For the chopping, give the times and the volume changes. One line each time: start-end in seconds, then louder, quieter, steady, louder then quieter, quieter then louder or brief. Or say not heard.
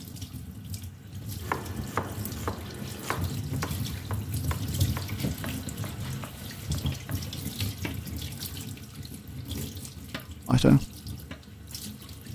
1.4-7.3 quieter.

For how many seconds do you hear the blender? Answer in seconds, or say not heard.
not heard.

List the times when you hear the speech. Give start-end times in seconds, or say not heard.
10.4-10.8.